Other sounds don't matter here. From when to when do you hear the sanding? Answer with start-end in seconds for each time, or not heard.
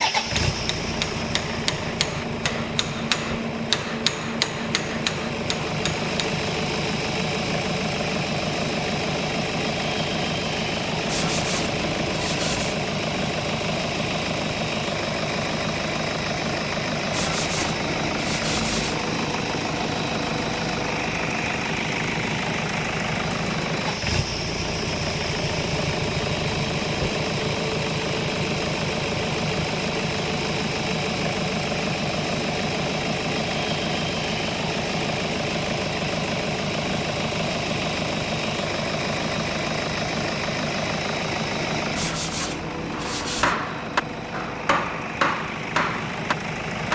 11.1-12.8, 17.1-18.9, 42.0-43.5.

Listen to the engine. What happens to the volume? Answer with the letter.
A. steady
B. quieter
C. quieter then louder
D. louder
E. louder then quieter
A.